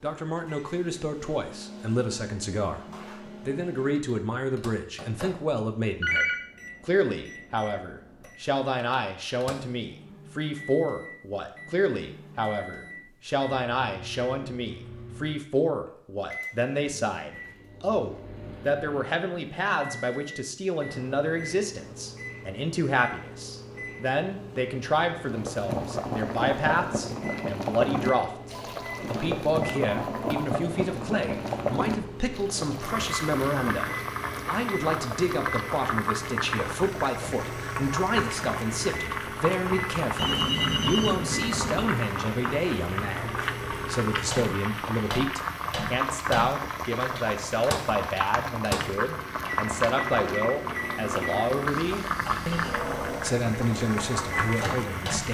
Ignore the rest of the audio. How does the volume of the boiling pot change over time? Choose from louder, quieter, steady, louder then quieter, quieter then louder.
steady.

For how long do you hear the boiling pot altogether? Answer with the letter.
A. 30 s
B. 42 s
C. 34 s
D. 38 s
A.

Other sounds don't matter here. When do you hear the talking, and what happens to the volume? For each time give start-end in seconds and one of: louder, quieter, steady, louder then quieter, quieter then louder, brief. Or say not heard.
0.0-55.2 steady.